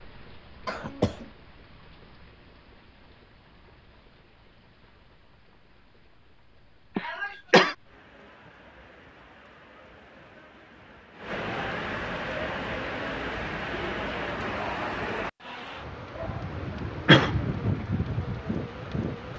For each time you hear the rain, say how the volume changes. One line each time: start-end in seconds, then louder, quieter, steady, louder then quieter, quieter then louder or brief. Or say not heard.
0.0-19.3 quieter then louder.